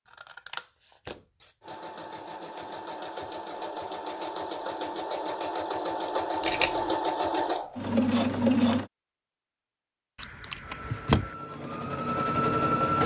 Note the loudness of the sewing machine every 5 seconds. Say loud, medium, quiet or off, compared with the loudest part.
medium, loud, loud.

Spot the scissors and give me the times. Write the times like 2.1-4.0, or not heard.
0.1-1.5, 6.4-7.0, 10.2-11.3.